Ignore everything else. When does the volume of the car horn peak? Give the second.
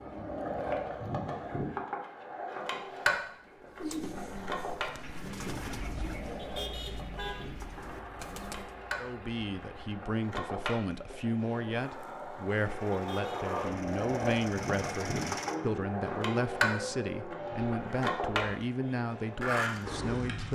7 s.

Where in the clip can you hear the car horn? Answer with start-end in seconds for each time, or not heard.
6.3-7.5, 12.9-13.4.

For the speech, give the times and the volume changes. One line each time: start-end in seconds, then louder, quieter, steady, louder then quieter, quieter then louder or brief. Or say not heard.
8.9-20.5 steady.